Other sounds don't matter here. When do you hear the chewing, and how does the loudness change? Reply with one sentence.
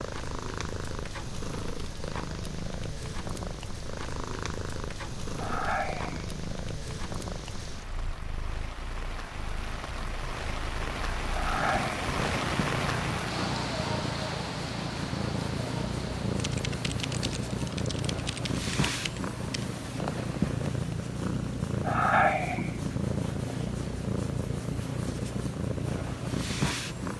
You can't hear the chewing here.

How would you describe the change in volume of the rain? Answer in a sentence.
The volume of the rain goes up, then down.